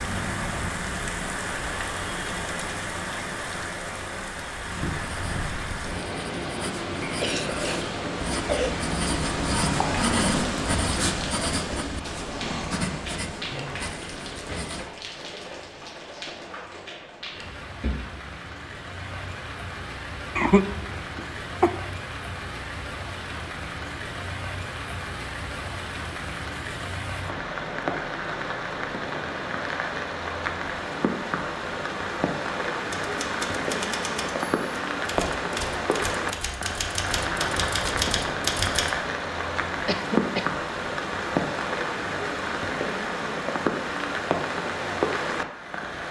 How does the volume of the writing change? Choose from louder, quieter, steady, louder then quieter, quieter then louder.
louder then quieter.